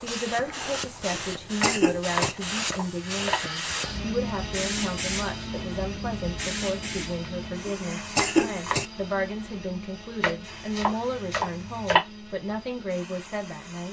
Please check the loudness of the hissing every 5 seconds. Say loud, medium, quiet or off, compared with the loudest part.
loud, loud, quiet.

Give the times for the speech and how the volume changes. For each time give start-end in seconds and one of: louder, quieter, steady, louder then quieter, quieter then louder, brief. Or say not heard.
0.0-13.8 steady.